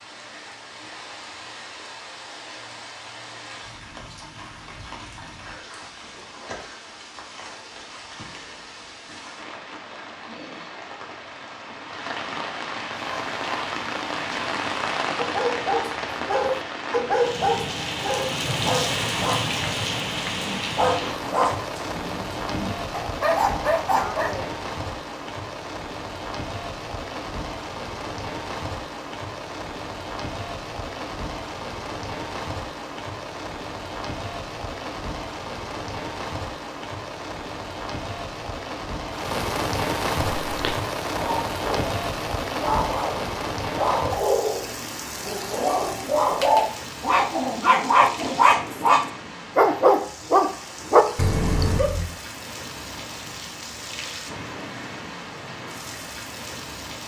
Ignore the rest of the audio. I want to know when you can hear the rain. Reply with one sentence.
The rain can be heard from 0.0 to 57.0 s.